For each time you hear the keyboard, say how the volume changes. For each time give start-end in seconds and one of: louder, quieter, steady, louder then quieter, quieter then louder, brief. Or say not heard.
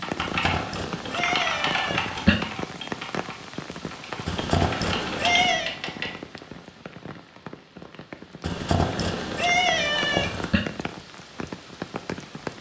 0.0-6.1 quieter then louder.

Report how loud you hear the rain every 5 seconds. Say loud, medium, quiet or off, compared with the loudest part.
loud, medium, loud.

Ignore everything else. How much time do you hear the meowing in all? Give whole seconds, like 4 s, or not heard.
6 s.